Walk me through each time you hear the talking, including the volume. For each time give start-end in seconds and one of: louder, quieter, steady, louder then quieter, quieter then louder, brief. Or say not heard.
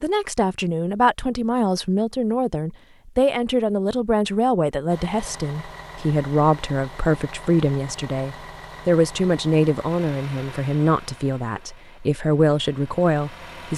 0.0-13.7 steady.